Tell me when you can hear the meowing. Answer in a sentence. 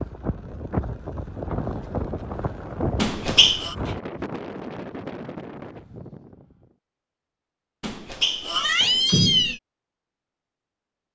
You can hear the meowing from 3.0 to 3.8 s and from 7.8 to 9.6 s.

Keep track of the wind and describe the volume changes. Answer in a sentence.
The volume of the wind goes down.